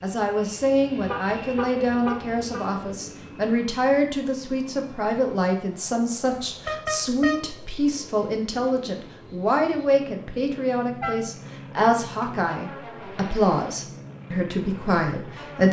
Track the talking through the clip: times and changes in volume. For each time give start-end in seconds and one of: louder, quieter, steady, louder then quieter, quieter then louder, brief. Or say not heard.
0.0-15.6 steady.